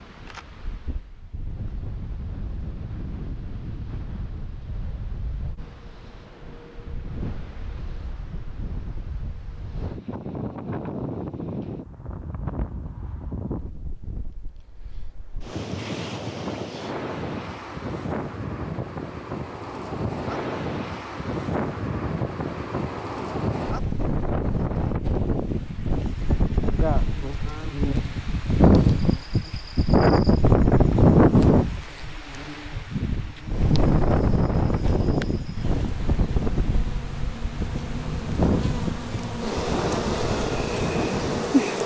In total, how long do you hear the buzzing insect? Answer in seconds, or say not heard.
15 s.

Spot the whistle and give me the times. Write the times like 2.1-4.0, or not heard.
not heard.